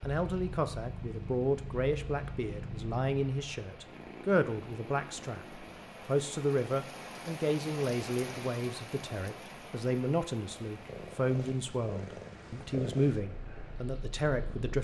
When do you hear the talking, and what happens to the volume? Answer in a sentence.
You can hear the talking from 0.0 to 14.8 s, at a steady volume.